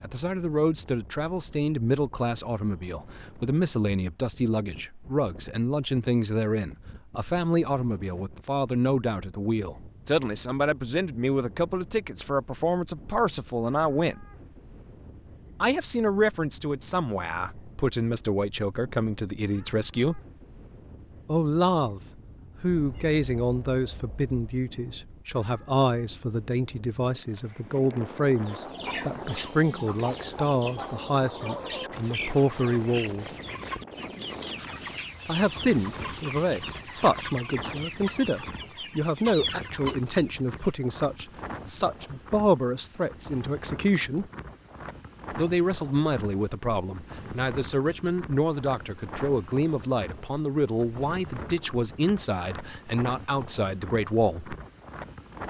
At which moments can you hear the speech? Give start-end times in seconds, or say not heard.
0.0-14.2, 15.6-20.2, 21.2-22.0, 22.6-33.2, 35.2-44.3, 45.3-54.5.